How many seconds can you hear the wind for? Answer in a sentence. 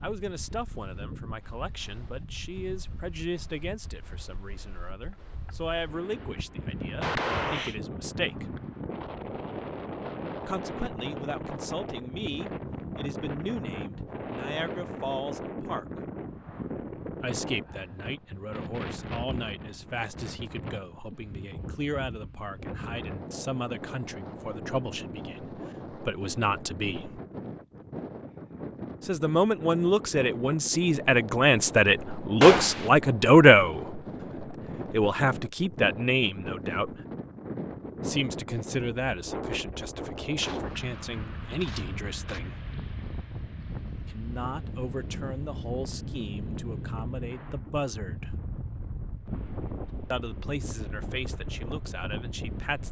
The wind can be heard for 53 seconds in total.